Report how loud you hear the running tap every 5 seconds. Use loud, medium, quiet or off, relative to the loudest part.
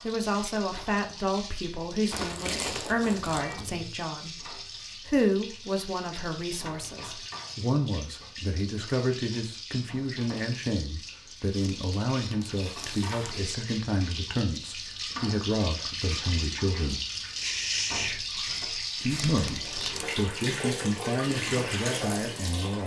medium, medium, medium, loud, loud.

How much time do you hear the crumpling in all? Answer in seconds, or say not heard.
5 s.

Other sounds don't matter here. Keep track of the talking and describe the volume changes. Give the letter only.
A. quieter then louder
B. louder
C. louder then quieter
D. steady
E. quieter
D.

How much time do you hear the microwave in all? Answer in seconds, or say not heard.
not heard.